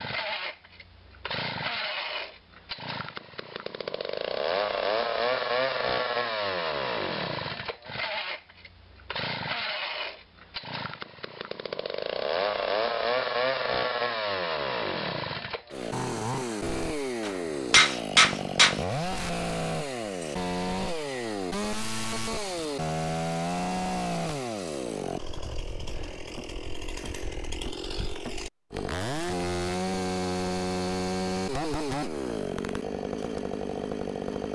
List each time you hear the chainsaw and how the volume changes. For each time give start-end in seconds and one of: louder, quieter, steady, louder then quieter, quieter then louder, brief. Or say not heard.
0.0-34.5 steady.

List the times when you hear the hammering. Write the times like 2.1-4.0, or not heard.
17.2-18.8.